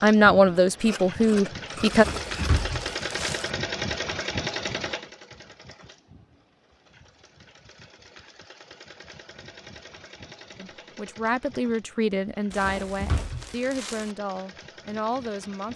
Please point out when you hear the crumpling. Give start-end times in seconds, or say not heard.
1.9-3.5, 12.5-14.1.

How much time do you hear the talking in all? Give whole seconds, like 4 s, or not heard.
7 s.